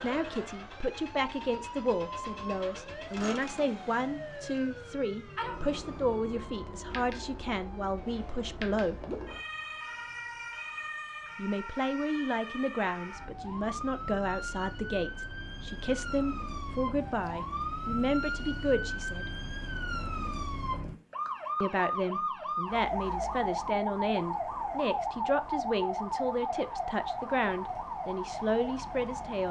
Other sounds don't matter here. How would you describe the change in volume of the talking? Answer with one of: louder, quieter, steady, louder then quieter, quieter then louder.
steady.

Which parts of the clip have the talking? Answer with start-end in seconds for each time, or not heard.
0.0-9.1, 11.3-19.4, 21.6-29.4.